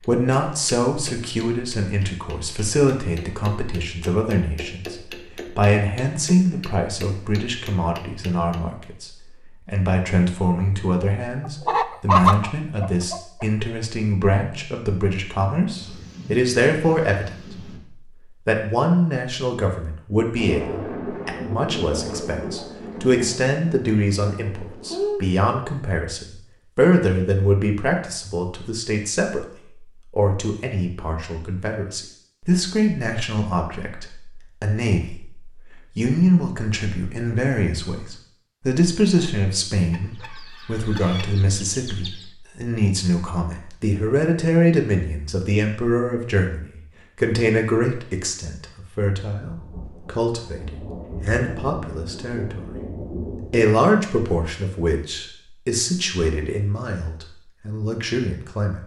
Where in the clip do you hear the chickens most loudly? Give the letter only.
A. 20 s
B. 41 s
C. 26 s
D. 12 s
D.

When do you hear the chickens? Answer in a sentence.
The chickens can be heard from 11.4 to 13.4 s and from 39.9 to 42.3 s.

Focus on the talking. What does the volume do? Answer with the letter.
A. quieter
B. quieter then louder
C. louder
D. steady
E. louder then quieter
D.